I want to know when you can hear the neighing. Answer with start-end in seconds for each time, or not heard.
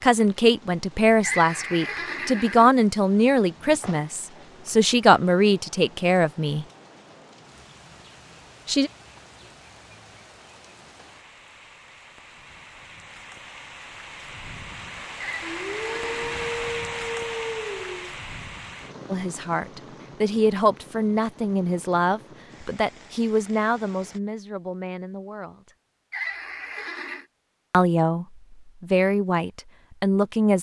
1.2-2.8, 15.2-16.5, 26.1-27.2.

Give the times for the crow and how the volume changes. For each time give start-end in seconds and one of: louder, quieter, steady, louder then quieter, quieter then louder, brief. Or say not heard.
not heard.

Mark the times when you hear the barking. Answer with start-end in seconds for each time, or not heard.
15.4-18.1.